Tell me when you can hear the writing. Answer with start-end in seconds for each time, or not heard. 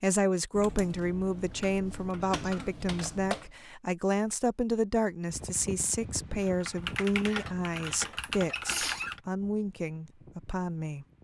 not heard.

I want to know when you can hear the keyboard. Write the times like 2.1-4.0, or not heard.
0.6-3.5, 6.4-9.2.